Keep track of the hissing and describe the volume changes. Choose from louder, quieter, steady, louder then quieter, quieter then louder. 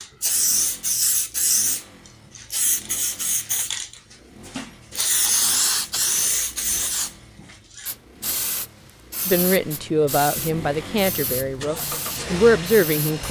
quieter.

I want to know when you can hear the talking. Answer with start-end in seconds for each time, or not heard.
9.2-13.2.